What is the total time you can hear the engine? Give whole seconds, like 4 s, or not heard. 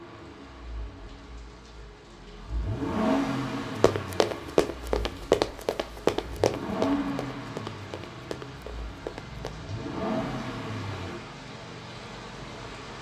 11 s.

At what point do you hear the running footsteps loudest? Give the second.
5 s.